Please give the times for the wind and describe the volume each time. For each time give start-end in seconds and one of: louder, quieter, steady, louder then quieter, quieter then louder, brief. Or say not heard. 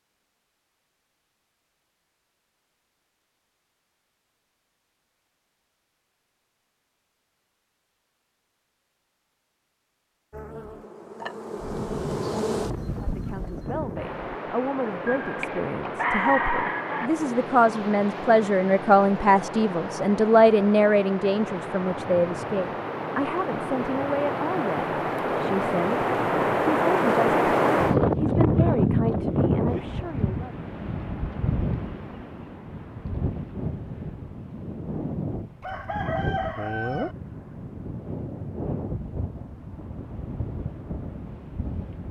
11.6-42.0 louder then quieter.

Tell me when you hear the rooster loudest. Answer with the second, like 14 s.
16 s.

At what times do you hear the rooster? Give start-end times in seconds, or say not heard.
15.1-17.1, 35.6-37.1.